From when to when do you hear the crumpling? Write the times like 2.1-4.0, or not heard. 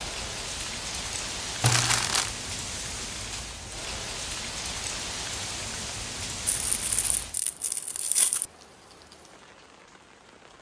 1.6-2.3, 6.7-8.4.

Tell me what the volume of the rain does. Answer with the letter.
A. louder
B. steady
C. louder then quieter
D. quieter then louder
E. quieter
E.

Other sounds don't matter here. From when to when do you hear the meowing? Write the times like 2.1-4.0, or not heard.
not heard.